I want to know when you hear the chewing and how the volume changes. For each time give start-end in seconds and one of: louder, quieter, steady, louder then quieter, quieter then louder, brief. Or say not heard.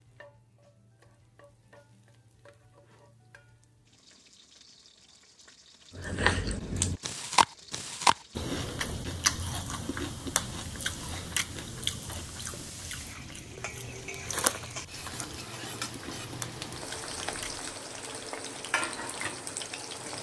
6.0-17.7 quieter.